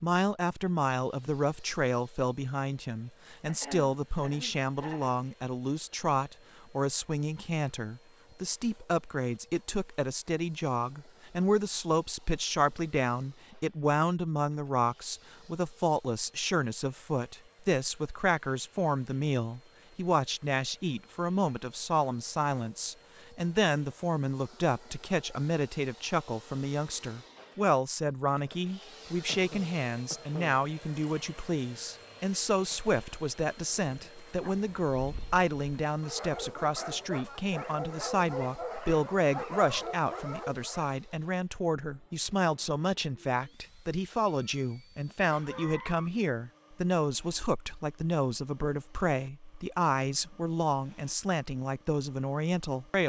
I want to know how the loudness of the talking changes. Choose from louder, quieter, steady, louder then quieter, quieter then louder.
steady.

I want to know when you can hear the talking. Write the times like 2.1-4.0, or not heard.
0.0-53.0.